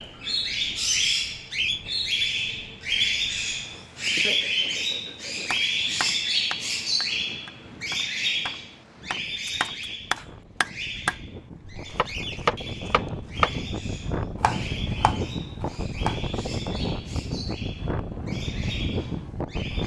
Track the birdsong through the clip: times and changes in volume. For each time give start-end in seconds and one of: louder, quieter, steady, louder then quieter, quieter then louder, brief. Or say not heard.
0.0-19.8 quieter.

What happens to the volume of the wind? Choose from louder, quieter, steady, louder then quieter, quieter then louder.
louder.